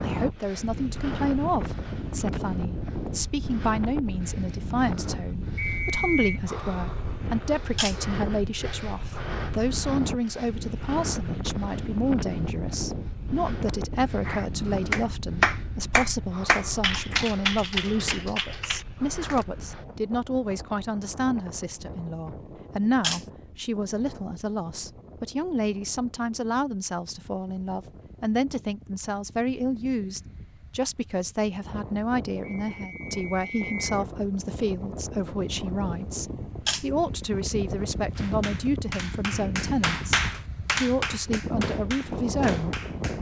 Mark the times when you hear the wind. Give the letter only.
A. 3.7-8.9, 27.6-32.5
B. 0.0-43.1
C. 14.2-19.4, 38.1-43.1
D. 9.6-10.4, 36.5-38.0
B.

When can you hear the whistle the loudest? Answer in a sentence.
The volume of the whistle peaks at 6 seconds.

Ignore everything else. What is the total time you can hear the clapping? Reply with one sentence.
You can hear the clapping for 10 seconds altogether.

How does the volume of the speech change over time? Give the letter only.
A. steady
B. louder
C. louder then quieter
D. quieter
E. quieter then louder
A.